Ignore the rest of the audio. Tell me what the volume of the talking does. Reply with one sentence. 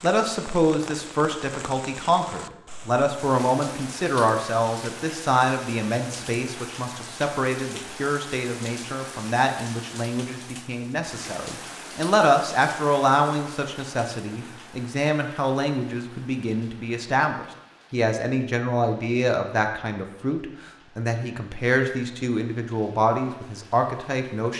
The loudness of the talking stays about the same.